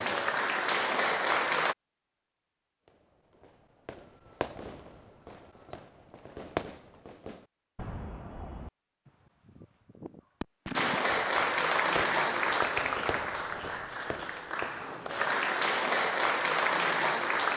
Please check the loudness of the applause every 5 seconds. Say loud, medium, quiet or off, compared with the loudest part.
loud, off, loud, loud.